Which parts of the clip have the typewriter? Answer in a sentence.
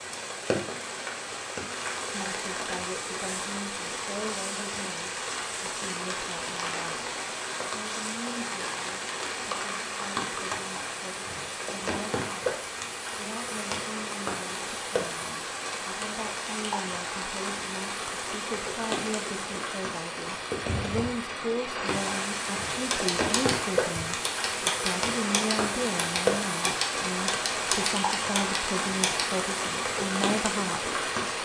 The typewriter can be heard from 22.9 to 29.2 s.